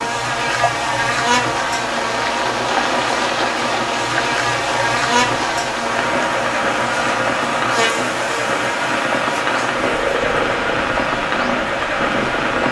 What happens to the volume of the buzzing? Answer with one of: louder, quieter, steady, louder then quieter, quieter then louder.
quieter.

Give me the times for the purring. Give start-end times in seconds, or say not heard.
9.8-12.6.